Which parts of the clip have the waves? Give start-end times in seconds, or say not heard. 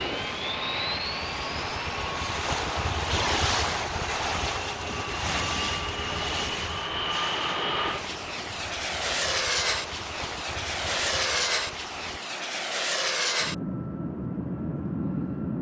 0.0-12.2.